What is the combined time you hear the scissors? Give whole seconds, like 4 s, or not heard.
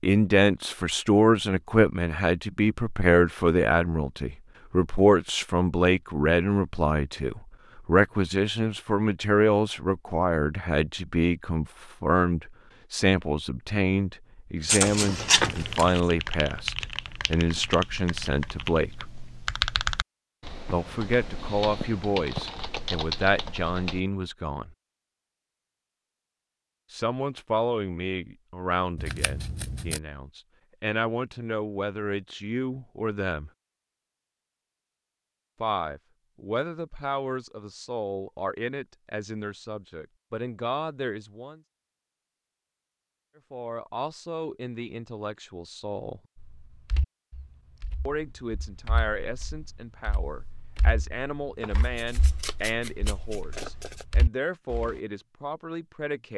5 s.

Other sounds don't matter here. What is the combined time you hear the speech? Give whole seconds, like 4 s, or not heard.
47 s.